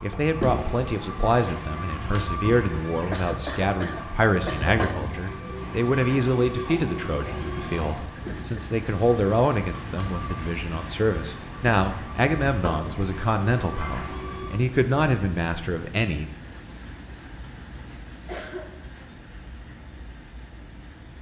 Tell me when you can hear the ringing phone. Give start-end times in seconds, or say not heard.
not heard.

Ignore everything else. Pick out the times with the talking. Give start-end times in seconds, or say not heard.
0.0-16.3.